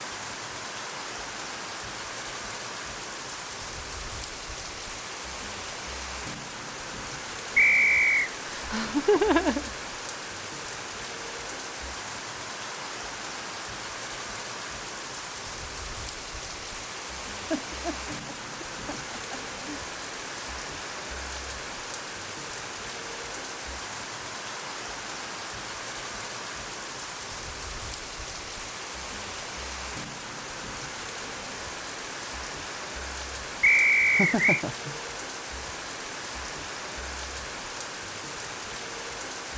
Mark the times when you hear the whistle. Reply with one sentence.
You can hear the whistle from 7.5 to 8.3 s and from 33.6 to 34.6 s.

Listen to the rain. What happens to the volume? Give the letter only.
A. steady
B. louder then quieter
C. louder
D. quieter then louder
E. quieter
A.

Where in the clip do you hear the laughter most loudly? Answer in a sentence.
The loudest moment of the laughter is at 9 seconds.